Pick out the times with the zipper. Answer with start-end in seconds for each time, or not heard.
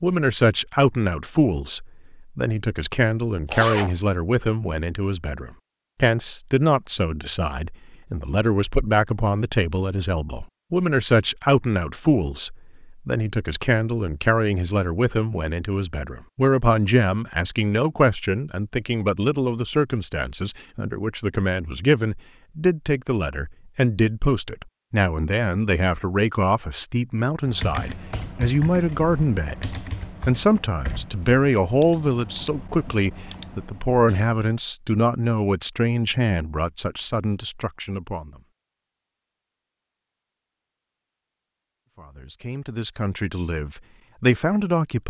3.5-4.0.